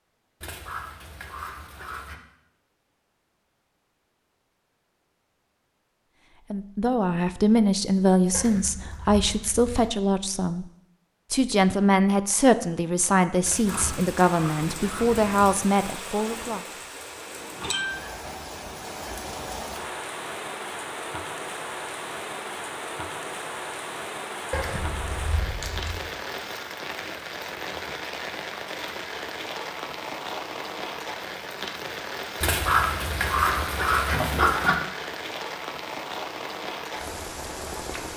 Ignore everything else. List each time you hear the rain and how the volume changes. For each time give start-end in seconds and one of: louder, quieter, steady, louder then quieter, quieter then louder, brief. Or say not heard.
13.7-38.1 steady.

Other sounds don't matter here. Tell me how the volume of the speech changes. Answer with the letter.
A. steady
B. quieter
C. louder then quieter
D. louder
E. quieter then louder
A.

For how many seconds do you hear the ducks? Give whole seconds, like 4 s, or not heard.
6 s.